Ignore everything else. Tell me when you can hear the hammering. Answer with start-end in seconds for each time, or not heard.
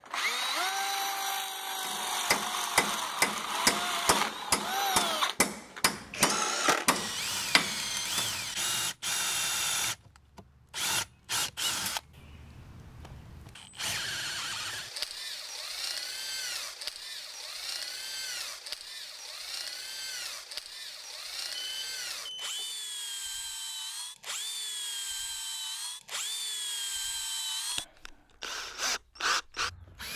1.8-8.2.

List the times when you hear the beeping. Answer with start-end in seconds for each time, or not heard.
21.6-22.8.